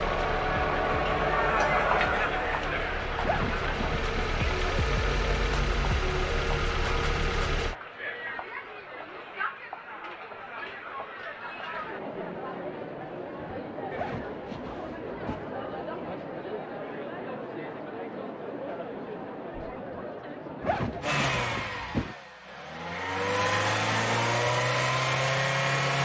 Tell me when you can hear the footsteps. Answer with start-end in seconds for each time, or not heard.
not heard.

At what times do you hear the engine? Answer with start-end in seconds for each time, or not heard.
0.0-7.8, 21.0-26.0.